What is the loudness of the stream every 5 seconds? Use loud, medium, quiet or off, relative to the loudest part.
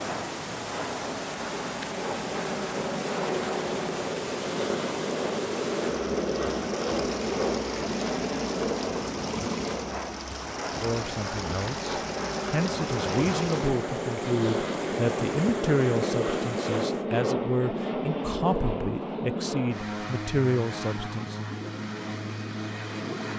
loud, loud, loud, loud, off.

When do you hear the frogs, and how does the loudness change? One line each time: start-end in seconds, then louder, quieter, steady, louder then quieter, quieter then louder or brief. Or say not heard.
not heard.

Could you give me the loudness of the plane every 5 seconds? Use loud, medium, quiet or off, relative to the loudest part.
loud, loud, loud, loud, medium.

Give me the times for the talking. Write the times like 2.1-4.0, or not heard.
10.8-21.5.